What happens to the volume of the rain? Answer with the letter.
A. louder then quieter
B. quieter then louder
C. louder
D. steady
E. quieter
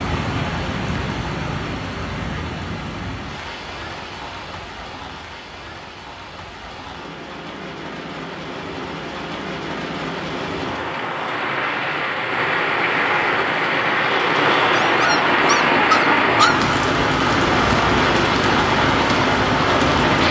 B.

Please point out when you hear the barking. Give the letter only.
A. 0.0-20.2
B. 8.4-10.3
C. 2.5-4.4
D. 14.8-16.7
D.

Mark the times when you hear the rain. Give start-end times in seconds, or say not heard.
0.0-20.2.